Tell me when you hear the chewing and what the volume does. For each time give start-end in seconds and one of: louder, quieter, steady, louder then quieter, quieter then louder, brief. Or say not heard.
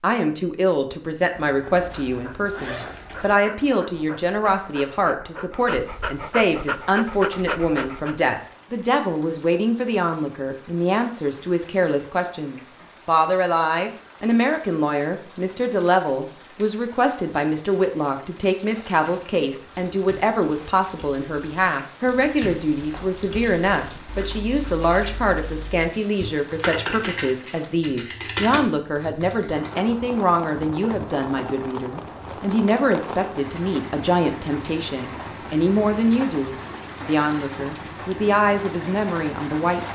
not heard.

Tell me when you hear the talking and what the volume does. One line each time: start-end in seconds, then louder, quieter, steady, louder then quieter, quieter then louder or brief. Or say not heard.
0.0-39.9 steady.